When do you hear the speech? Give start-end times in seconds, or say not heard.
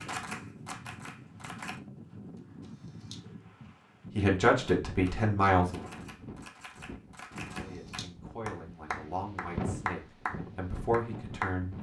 4.2-5.9, 7.5-11.7.